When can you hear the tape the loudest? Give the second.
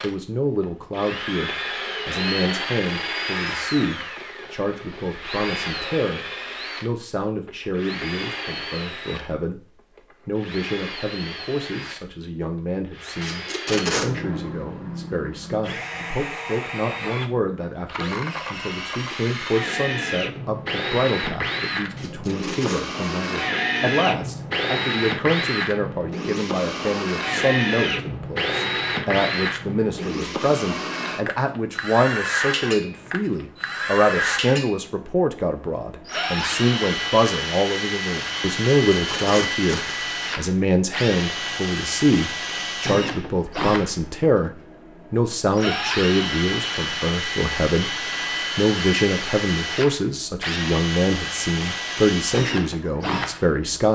14 s.